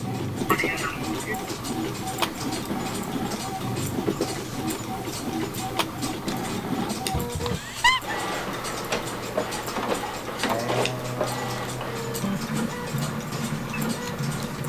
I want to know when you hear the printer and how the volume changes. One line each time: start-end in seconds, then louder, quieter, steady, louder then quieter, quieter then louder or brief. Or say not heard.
0.0-14.6 steady.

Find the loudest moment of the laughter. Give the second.
8 s.